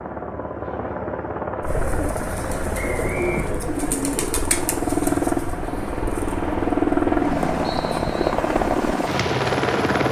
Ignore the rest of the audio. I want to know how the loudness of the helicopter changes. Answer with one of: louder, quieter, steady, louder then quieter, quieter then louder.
louder.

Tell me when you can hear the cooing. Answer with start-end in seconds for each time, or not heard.
1.6-8.7.